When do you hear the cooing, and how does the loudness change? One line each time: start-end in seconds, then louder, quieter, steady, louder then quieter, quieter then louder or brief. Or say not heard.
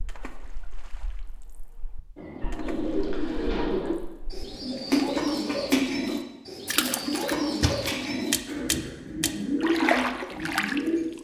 2.1-11.1 steady.